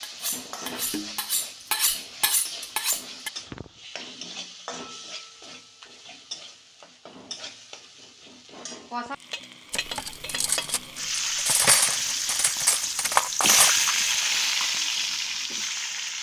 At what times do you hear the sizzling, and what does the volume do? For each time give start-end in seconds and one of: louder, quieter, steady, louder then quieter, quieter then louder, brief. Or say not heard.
0.0-16.1 louder.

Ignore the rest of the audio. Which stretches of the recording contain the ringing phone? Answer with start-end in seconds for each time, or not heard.
not heard.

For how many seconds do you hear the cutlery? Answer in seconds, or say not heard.
7 s.